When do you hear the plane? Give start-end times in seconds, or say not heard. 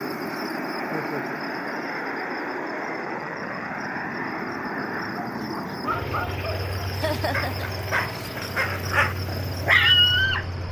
0.0-10.6.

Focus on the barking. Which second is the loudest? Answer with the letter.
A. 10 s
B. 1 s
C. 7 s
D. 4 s
A.